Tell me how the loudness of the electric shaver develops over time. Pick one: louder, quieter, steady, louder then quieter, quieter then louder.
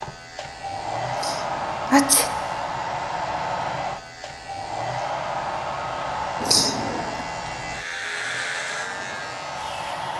louder.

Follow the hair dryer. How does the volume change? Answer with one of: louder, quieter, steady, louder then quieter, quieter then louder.
quieter.